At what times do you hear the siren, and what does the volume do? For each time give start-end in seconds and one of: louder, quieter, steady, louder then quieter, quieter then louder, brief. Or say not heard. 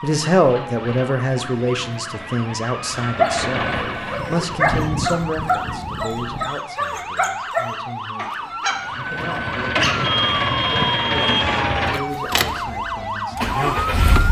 0.0-14.2 louder.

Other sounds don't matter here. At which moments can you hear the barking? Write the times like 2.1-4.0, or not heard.
3.1-9.9.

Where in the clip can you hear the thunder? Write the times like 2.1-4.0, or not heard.
3.5-6.5.